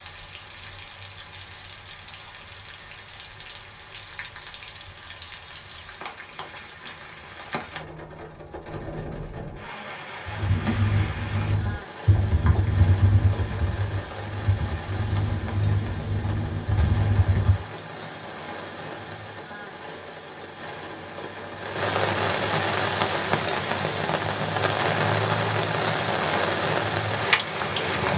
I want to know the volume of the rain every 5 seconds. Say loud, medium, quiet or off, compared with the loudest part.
quiet, quiet, quiet, quiet, loud, loud.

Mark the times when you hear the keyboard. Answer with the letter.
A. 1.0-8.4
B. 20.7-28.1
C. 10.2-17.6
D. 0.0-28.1
C.